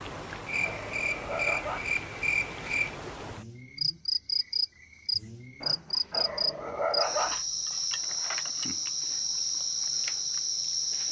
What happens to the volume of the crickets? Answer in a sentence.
The loudness of the crickets stays about the same.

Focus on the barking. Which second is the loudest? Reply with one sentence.
The volume of the barking peaks at 7 seconds.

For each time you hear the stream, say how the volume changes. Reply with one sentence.
You can't hear the stream here.